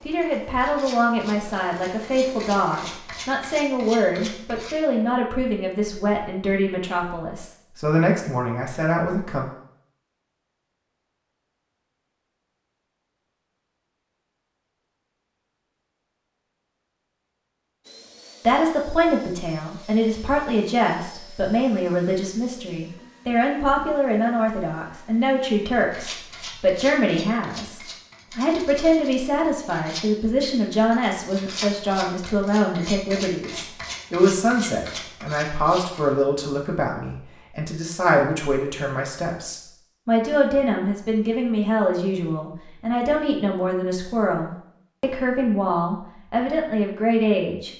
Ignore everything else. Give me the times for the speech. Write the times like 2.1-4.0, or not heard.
0.0-9.4, 18.4-47.7.